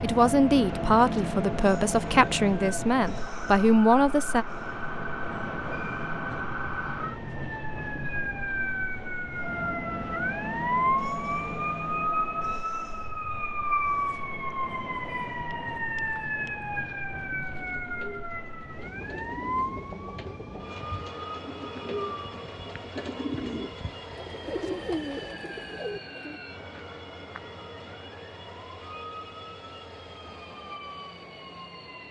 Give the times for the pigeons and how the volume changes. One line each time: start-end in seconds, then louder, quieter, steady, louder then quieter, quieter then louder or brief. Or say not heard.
17.6-26.4 louder.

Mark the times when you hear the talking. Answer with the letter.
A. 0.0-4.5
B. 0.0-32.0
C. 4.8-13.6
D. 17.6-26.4
A.